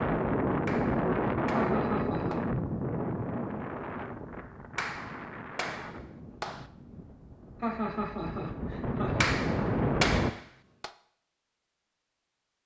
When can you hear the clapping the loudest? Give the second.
10 s.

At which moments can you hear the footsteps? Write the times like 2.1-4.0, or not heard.
not heard.